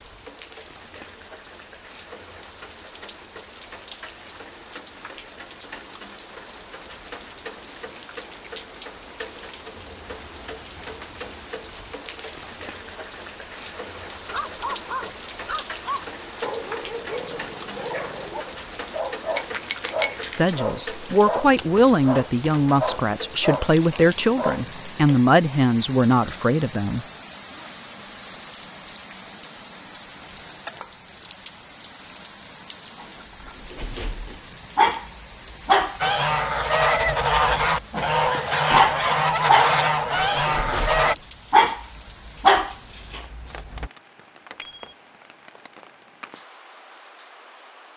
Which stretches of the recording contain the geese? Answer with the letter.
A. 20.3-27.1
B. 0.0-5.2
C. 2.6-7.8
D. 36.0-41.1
D.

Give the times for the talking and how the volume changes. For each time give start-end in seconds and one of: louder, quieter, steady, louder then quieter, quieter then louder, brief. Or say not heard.
20.3-27.1 steady.